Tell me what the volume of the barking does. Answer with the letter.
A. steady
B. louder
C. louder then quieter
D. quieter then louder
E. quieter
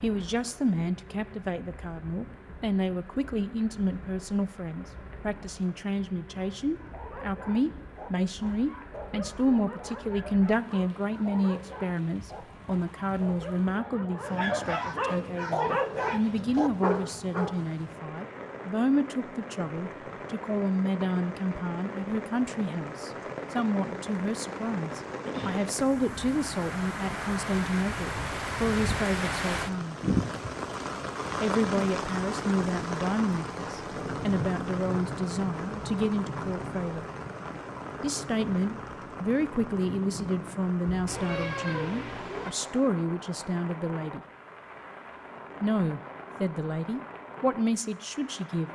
B.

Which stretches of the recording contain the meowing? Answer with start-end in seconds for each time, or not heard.
41.0-42.5.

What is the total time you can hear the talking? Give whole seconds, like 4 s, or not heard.
45 s.